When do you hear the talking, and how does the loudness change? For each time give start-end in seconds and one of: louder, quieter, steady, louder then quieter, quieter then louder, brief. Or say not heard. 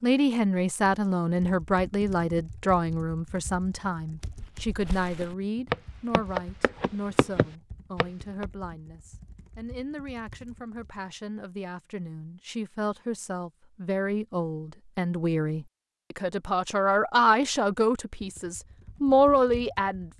0.0-20.1 quieter then louder.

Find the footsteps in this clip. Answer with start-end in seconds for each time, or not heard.
4.2-8.4.